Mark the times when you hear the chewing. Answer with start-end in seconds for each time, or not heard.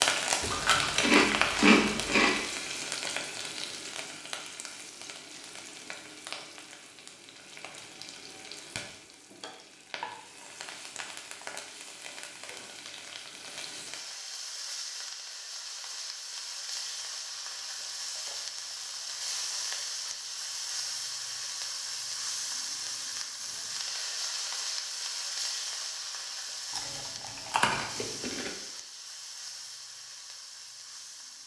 0.4-2.4, 26.8-28.5.